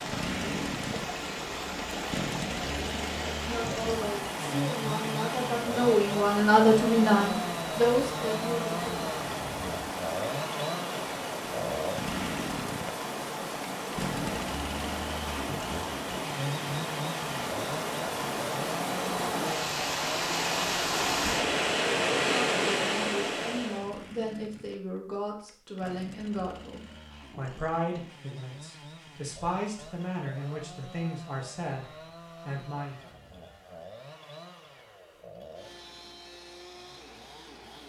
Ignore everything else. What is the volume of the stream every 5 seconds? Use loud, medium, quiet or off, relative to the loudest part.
medium, medium, medium, medium, loud, off, off, off.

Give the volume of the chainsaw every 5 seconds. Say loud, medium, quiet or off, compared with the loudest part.
loud, loud, loud, loud, medium, quiet, quiet, quiet.